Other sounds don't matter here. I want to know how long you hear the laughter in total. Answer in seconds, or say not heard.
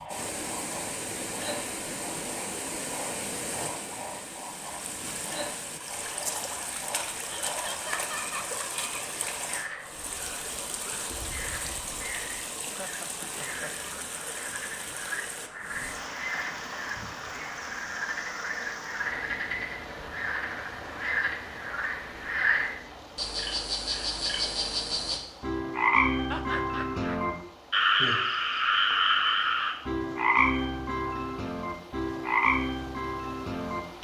3 s.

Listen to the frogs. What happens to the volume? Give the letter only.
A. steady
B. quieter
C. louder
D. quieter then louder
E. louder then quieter
C.